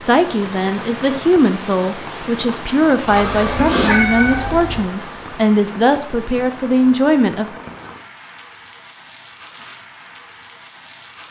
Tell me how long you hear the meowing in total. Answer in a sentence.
The meowing can be heard for 2 seconds in total.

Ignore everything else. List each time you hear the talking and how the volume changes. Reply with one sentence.
You can hear the talking from 0.0 to 7.5 s, at a steady volume.